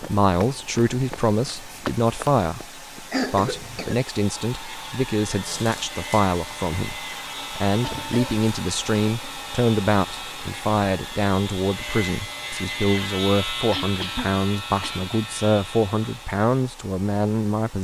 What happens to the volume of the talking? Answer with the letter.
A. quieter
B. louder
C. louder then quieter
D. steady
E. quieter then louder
D.